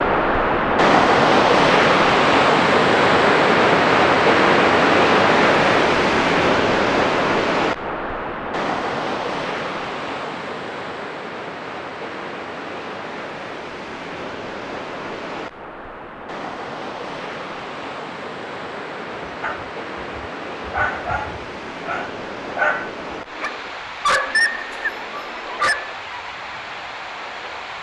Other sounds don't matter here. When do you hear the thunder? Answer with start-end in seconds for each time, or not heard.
not heard.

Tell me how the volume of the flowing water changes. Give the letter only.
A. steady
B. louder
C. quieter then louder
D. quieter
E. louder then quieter
D.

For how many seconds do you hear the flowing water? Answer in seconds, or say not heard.
28 s.